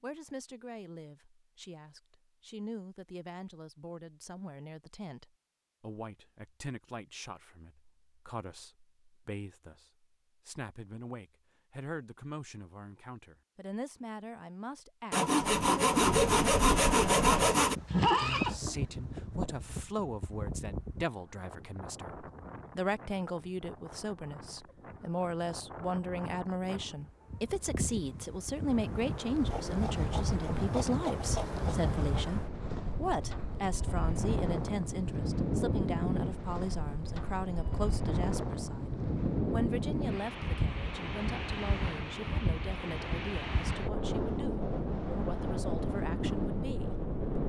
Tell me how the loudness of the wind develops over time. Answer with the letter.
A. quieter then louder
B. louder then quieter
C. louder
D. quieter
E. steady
A.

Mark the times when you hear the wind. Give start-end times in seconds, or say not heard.
15.4-47.4.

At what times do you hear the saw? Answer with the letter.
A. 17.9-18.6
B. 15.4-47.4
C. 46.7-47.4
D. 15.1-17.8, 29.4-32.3
D.